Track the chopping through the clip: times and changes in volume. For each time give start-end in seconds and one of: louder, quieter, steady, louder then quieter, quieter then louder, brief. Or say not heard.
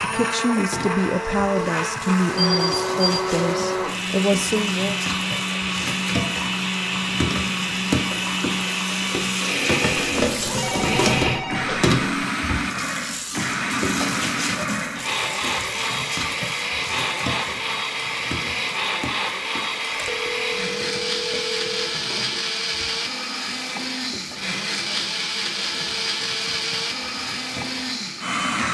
not heard.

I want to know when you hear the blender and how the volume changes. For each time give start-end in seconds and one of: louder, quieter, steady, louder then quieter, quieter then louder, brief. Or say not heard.
0.0-28.7 steady.